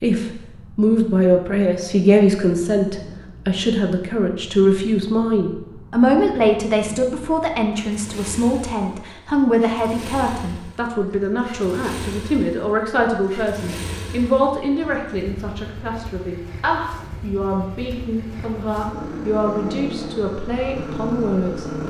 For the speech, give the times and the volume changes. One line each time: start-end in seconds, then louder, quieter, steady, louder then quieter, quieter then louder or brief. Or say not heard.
0.0-21.6 quieter.